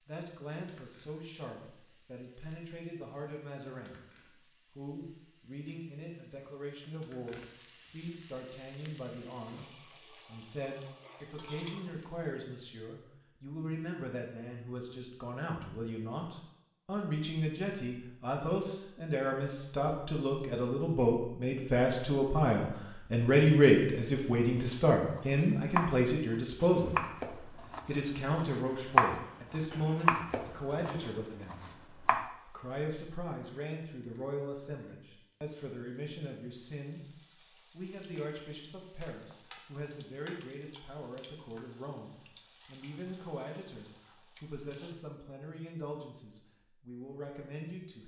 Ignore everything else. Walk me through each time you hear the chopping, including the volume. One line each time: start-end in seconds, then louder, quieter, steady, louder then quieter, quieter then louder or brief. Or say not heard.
24.6-32.3 louder then quieter.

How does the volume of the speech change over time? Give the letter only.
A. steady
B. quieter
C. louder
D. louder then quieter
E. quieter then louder
D.